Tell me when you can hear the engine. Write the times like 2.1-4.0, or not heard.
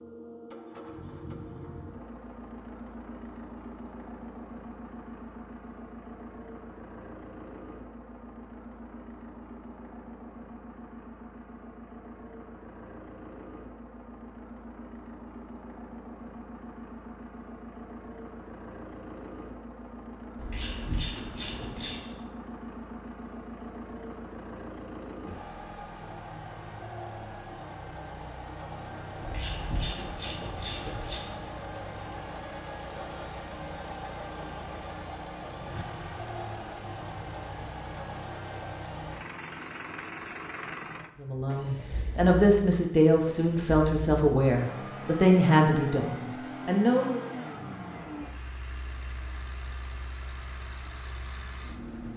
0.0-52.1.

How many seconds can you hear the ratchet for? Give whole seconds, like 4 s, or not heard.
4 s.